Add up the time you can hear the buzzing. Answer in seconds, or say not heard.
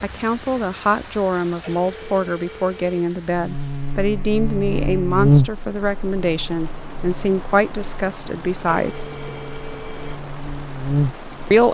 8 s.